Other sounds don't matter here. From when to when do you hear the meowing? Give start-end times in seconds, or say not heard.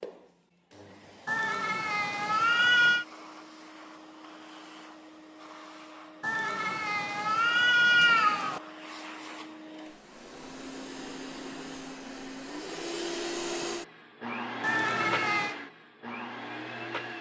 1.2-3.0, 6.2-8.6, 14.6-15.6.